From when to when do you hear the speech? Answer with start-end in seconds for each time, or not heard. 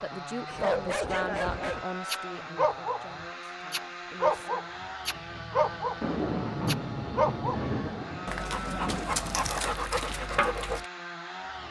0.0-4.6.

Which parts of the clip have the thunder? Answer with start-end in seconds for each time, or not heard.
6.0-9.6.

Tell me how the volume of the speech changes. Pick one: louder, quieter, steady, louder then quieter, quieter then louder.
quieter.